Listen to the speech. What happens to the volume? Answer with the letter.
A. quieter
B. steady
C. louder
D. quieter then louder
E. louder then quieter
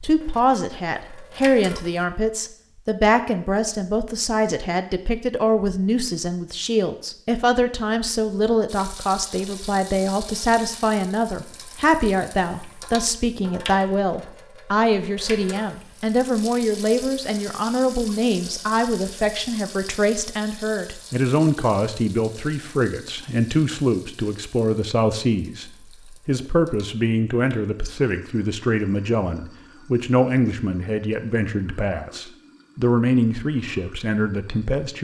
B.